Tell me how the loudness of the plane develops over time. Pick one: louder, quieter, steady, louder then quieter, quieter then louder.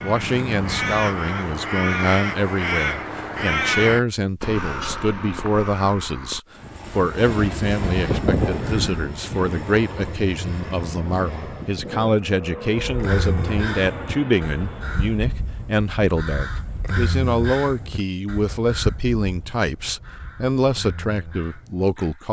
quieter.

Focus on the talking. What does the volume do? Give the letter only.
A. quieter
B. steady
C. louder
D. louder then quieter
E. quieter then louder
B.